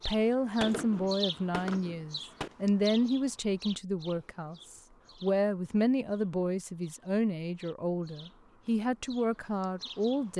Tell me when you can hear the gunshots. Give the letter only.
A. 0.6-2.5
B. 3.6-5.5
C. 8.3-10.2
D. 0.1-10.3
A.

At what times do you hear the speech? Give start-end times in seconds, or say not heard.
0.1-10.3.